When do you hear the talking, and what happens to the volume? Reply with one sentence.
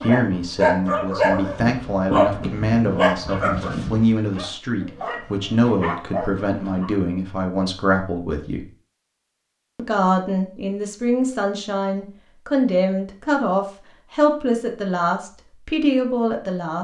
The talking can be heard from 0.0 to 8.7 s, at a steady volume; and from 9.8 to 16.8 s, at a steady volume.